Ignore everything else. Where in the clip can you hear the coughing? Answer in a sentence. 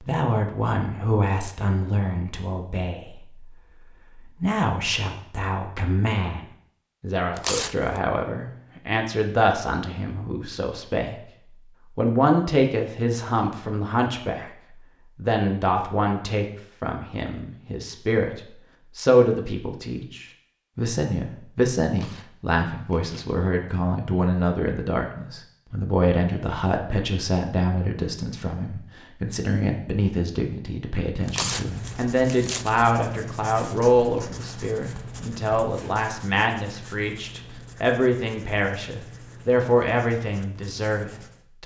The coughing can't be heard in this clip.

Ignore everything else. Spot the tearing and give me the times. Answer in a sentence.
You can hear the tearing from 7.3 to 7.8 s, from 21.9 to 23.4 s and from 31.2 to 32.8 s.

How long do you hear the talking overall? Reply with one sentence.
You can hear the talking for 41 seconds altogether.